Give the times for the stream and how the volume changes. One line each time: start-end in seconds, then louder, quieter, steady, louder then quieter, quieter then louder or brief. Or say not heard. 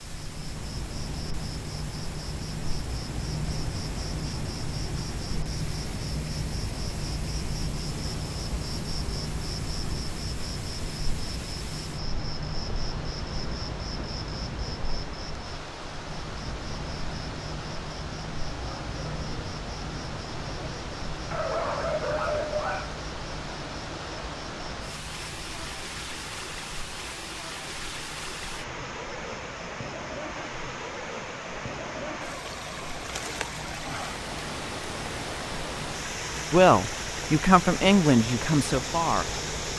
0.0-39.7 louder.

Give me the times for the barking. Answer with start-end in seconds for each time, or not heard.
21.3-22.9.